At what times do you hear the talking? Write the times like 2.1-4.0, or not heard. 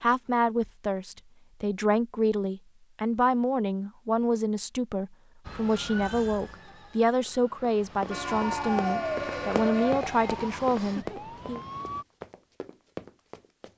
0.0-11.6.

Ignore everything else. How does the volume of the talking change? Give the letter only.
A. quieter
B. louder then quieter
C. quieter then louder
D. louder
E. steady
E.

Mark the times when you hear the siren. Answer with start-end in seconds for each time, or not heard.
5.5-12.1.